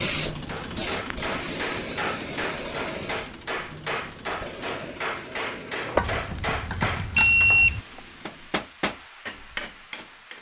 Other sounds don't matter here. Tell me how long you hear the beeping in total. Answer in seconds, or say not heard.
2 s.